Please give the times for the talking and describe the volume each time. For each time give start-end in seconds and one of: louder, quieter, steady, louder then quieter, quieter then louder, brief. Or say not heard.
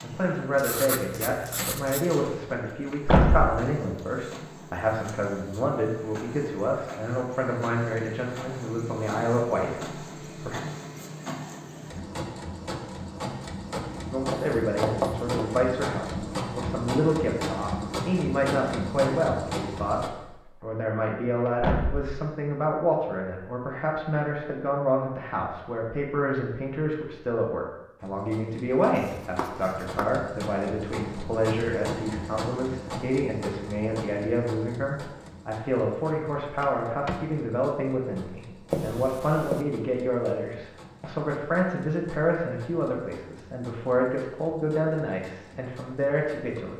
0.0-10.6 steady
14.1-46.7 steady.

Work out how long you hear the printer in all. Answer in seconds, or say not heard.
39 s.